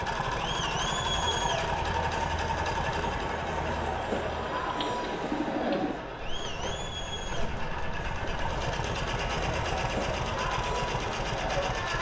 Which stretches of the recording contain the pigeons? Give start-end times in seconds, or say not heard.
3.6-8.8.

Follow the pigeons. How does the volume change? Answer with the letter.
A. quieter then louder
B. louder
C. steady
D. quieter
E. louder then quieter
E.